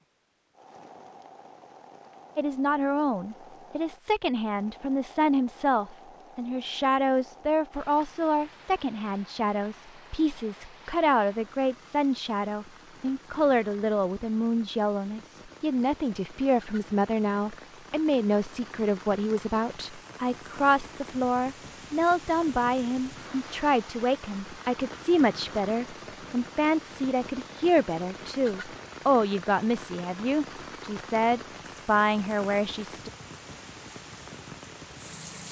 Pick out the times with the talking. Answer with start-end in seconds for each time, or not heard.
2.4-33.1.